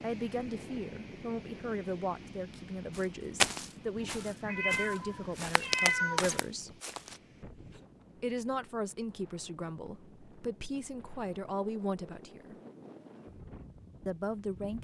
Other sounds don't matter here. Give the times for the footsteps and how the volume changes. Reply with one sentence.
The footsteps can be heard from 3.0 to 7.2 s, getting quieter then louder.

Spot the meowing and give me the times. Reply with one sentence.
You can hear the meowing from 4.0 to 6.3 s.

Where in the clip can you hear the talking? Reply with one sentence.
You can hear the talking from 0.0 to 6.8 s, from 8.2 to 12.6 s and from 14.1 to 14.7 s.